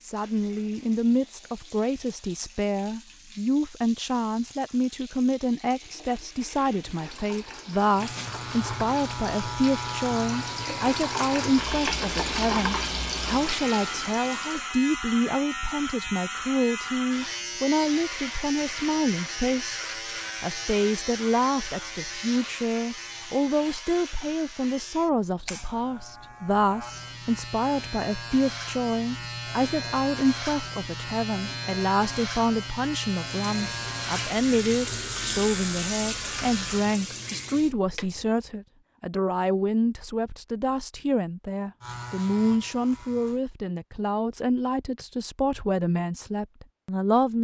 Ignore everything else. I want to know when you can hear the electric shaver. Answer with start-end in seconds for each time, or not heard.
8.0-36.9, 41.8-43.4.